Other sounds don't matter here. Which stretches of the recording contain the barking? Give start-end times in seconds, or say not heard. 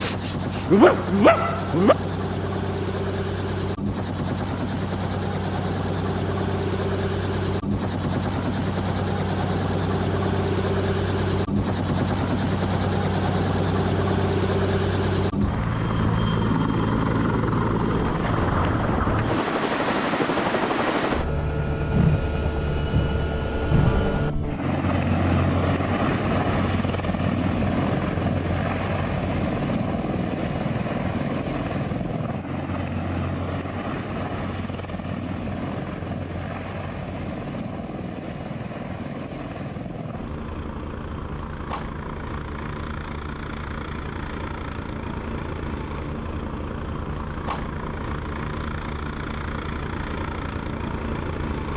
0.0-1.9.